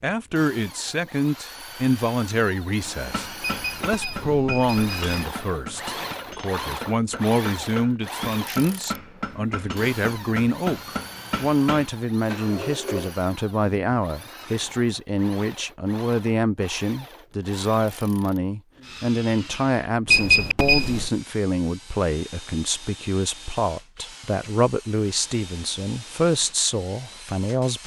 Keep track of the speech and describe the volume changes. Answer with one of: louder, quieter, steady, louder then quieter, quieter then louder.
steady.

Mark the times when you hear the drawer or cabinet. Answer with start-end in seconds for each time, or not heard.
12.2-13.2.